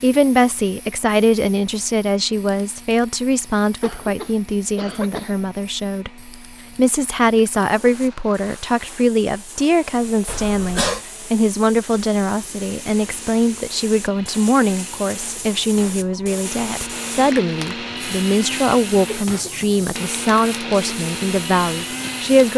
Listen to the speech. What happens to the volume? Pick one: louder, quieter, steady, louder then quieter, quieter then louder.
steady.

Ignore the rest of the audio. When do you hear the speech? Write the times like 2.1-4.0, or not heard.
0.0-22.5.